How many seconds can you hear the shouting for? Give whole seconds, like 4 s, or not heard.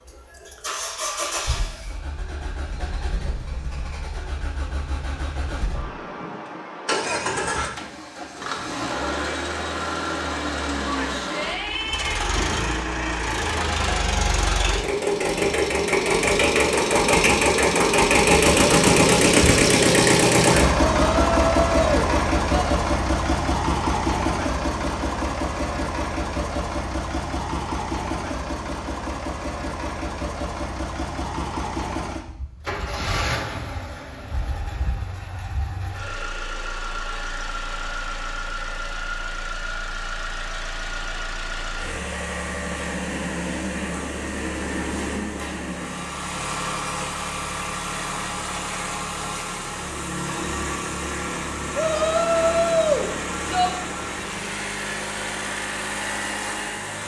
5 s.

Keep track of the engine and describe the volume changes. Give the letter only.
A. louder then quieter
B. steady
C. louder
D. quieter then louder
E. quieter
A.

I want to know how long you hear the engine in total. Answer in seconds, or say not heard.
57 s.